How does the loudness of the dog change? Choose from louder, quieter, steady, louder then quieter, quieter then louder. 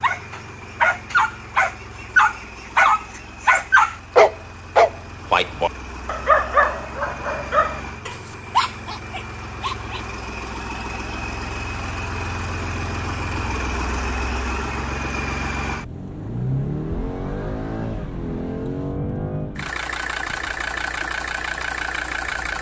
quieter.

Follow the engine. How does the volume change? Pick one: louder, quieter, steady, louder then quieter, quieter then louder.
louder.